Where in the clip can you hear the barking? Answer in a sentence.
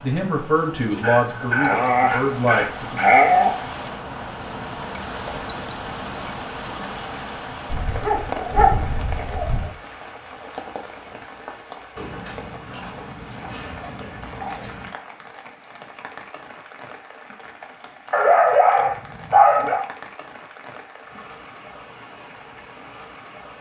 You can hear the barking from 0.9 to 3.7 s, from 7.7 to 9.7 s, from 11.9 to 14.9 s and from 18.1 to 19.9 s.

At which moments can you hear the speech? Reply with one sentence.
You can hear the speech from 0.0 to 3.0 s.